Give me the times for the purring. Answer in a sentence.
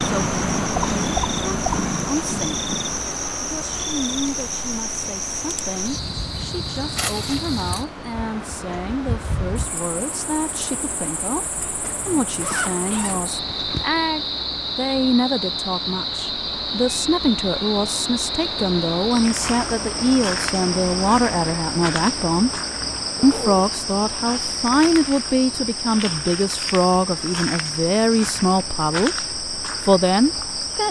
The purring can be heard from 0.0 to 3.0 s.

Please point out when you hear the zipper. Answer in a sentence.
You can hear the zipper from 11.8 to 13.8 s and from 23.1 to 23.6 s.